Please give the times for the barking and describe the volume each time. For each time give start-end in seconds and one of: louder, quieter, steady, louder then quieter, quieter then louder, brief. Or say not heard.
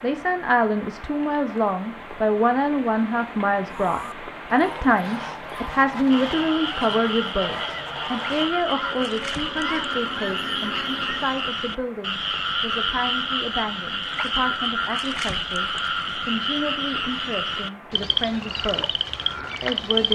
not heard.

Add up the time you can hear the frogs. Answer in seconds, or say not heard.
14 s.